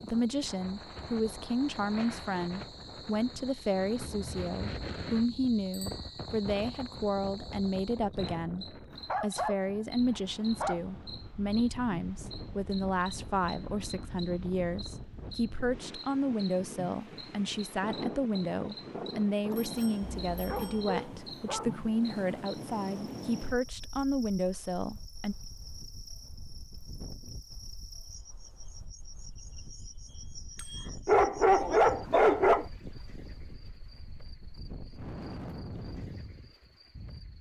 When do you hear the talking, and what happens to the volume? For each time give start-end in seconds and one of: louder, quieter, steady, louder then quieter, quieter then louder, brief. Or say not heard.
0.0-25.4 steady.